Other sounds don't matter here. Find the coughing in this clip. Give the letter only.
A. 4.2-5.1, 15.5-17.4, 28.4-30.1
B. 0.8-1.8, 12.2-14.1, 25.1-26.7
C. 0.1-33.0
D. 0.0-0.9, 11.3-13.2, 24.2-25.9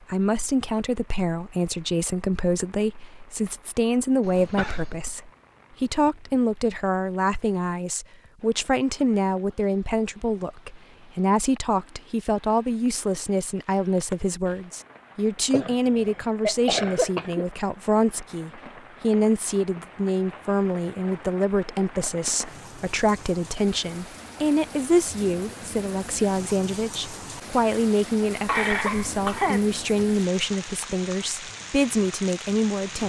A.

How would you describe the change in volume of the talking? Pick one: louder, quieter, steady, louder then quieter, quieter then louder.
steady.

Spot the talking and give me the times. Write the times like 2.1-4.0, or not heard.
0.1-33.0.